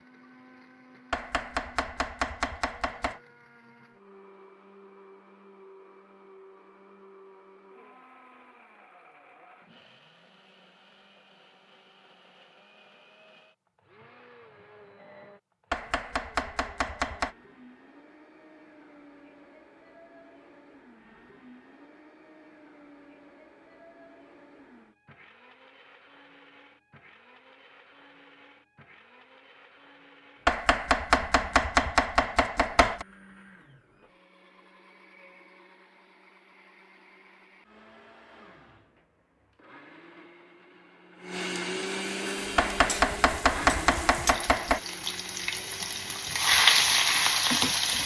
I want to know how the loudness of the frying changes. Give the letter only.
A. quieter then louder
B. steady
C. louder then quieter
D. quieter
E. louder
E.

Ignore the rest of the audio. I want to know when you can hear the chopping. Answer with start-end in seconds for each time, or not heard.
1.1-3.2, 15.7-17.4, 30.4-33.0, 42.5-44.8.